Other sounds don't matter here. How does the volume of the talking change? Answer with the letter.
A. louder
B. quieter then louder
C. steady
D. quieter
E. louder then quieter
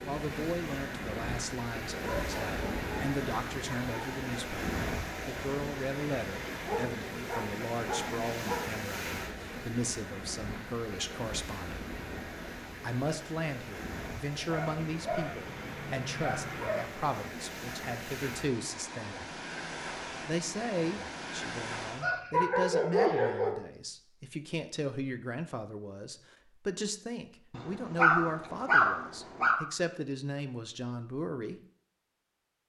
C.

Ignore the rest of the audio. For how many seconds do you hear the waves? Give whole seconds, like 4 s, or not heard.
22 s.